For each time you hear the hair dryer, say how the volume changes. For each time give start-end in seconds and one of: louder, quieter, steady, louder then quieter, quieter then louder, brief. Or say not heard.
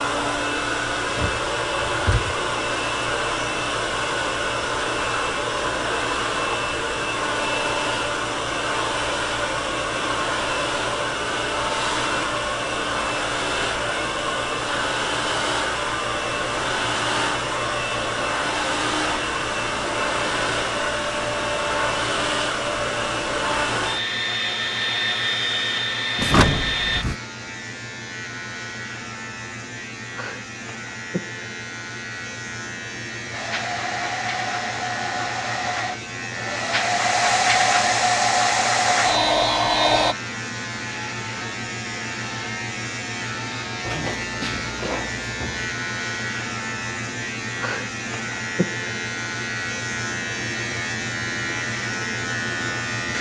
0.0-27.1 steady
33.3-40.1 louder.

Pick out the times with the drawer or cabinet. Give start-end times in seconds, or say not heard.
1.1-2.4, 26.1-27.1, 43.9-45.6.